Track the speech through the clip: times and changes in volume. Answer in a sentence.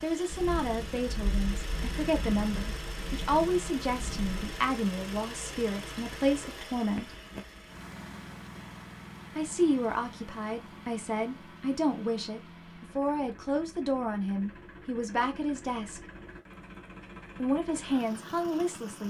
You can hear the speech from 0.0 to 7.1 s, at a steady volume; from 9.3 to 16.0 s, at a steady volume; and briefly from 17.4 to 19.0 s.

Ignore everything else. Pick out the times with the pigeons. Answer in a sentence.
You can't hear the pigeons here.